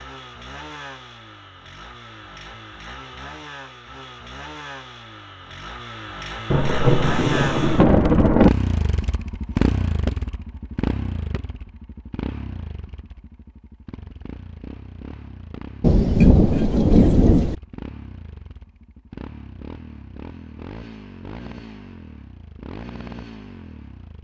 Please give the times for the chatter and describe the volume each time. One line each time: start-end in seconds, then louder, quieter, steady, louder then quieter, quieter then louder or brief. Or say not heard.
not heard.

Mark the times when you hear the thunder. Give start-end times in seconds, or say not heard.
6.5-8.5, 15.8-17.6.